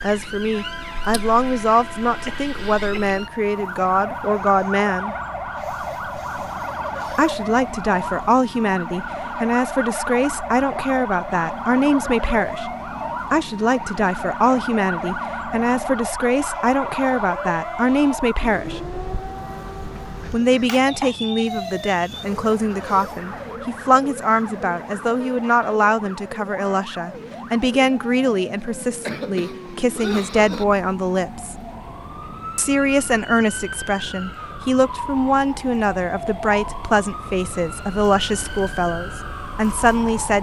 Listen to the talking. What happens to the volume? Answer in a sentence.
The loudness of the talking stays about the same.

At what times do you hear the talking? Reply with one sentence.
You can hear the talking from 0.0 to 5.2 s, from 7.1 to 12.7 s, from 13.3 to 18.9 s, from 20.3 to 31.6 s and from 32.5 to 40.3 s.